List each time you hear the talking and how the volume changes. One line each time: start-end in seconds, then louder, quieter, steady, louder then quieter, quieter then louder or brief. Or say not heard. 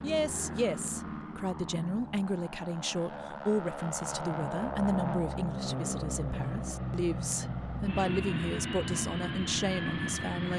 0.0-10.5 steady.